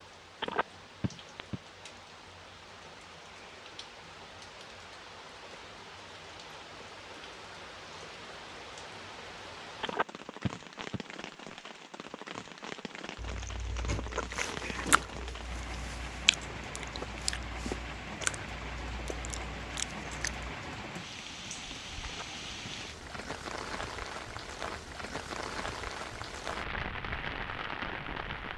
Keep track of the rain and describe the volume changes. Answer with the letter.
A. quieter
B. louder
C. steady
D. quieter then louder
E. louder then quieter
B.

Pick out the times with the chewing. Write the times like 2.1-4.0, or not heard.
13.2-20.4.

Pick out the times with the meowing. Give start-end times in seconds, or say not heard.
not heard.